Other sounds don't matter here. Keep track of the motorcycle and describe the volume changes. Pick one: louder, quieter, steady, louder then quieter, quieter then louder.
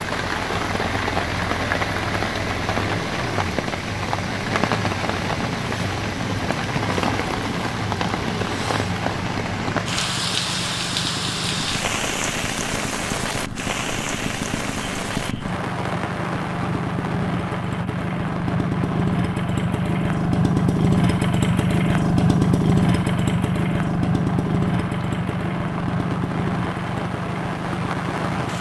louder.